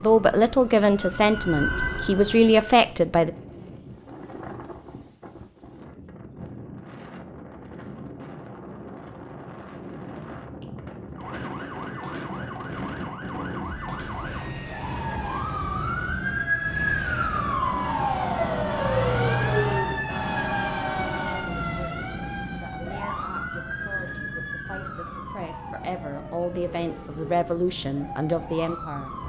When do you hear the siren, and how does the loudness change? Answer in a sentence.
The siren can be heard briefly from 0.0 to 2.8 s; and from 11.2 to 29.2 s, getting louder then quieter.